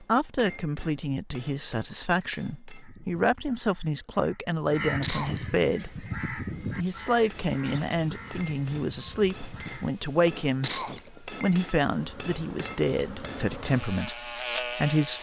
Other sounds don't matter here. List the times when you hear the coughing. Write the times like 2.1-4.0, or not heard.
4.8-5.6, 10.4-11.2.